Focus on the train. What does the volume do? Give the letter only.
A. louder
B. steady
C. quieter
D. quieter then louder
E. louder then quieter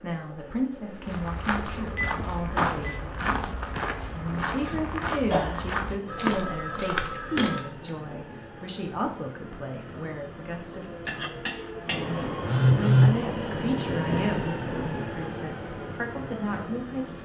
A.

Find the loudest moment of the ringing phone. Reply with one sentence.
The loudest moment of the ringing phone is at 13 seconds.